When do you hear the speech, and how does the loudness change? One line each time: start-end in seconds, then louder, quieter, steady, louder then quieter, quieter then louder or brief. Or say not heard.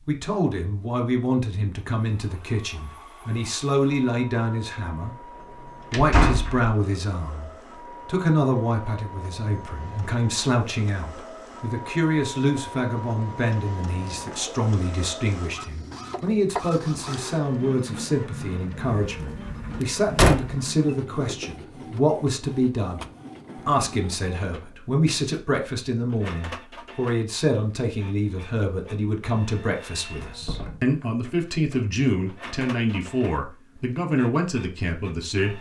0.1-35.5 steady.